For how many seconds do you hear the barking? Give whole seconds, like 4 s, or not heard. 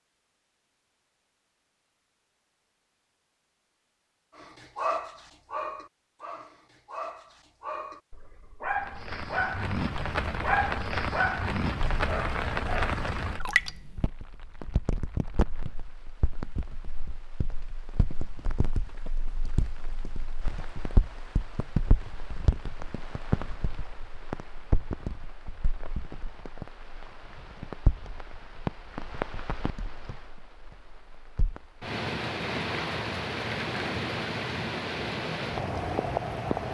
9 s.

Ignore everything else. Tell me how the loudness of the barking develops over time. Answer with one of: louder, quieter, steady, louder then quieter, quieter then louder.
quieter then louder.